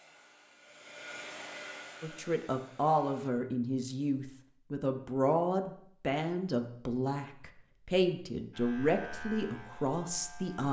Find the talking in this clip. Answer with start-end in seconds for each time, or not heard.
2.0-10.6.